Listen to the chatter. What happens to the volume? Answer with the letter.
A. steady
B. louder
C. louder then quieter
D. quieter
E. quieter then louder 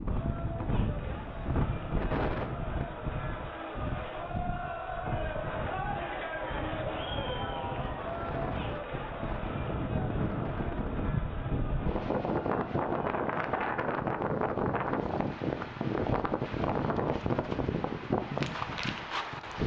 C.